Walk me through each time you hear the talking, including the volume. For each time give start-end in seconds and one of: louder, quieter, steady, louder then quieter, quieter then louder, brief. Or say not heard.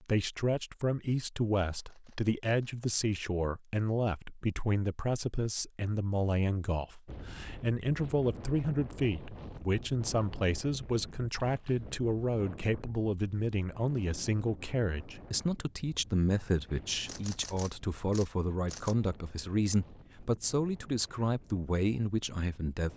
0.0-22.9 steady.